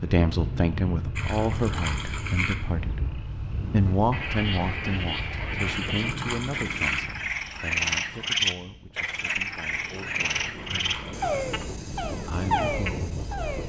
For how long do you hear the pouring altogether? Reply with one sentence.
You can hear the pouring for 4 seconds altogether.